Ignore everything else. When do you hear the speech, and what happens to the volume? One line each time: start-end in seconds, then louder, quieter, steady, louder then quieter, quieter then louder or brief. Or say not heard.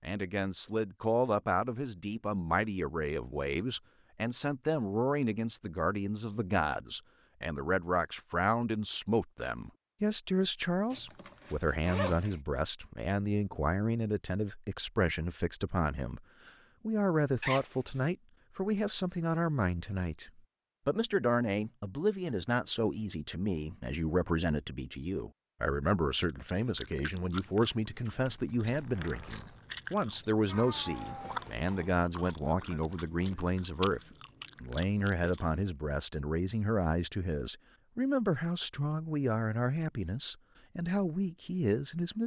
0.0-42.2 steady.